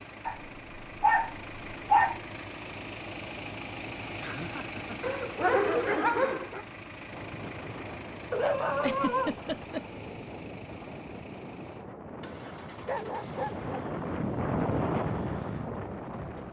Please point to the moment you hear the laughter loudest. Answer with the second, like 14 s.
9 s.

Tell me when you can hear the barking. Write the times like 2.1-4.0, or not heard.
0.2-2.2, 5.0-6.6, 8.3-10.2, 12.8-13.8.